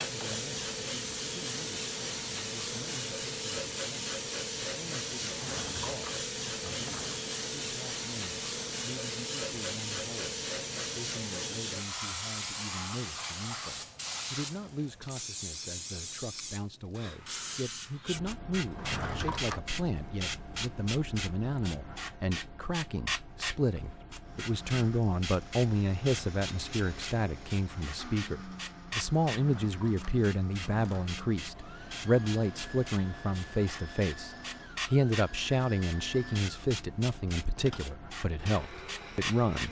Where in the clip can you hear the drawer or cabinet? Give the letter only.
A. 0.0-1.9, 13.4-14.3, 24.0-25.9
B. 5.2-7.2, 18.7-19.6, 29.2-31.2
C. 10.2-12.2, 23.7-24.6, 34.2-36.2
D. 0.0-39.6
B.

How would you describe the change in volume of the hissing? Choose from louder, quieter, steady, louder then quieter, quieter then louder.
quieter.